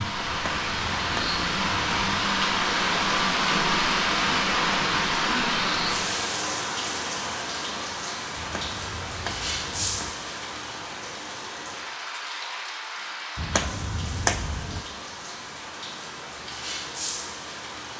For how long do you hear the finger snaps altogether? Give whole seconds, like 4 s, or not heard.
5 s.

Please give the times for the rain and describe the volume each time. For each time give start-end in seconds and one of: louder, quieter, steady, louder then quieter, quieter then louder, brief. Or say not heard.
0.0-17.9 quieter.